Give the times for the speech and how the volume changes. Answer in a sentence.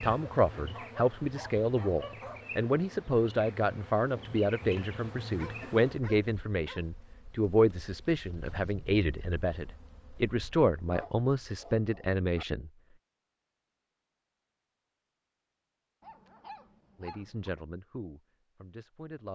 The speech can be heard from 0.0 to 12.7 s, at a steady volume; and briefly from 16.9 to 19.3 s.